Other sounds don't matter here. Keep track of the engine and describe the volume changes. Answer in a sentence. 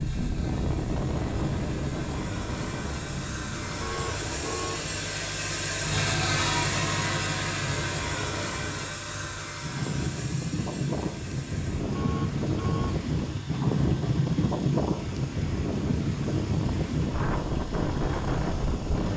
The loudness of the engine goes up, then down.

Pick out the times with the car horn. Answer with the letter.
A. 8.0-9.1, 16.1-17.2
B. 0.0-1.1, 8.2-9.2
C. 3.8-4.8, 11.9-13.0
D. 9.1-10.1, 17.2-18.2
C.